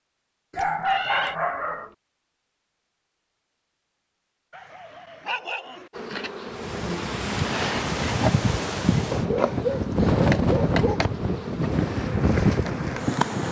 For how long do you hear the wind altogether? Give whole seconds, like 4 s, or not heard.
7 s.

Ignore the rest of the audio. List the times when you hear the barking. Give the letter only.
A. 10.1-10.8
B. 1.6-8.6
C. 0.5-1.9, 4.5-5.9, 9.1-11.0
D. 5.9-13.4
C.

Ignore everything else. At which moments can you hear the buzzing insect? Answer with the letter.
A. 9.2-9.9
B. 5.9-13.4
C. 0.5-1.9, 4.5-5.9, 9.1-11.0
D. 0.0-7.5
B.